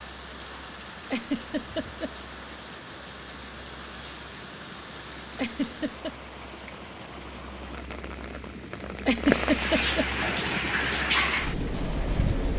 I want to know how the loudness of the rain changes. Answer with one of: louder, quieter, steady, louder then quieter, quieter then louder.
louder.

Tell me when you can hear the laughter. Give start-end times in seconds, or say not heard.
1.1-2.1, 5.3-6.1, 9.1-10.1.